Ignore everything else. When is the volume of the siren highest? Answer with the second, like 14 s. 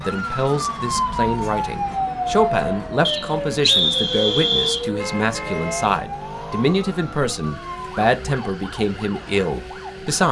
2 s.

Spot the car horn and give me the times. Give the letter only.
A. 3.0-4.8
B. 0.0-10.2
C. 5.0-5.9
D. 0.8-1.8
C.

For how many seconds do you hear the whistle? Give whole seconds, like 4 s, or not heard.
2 s.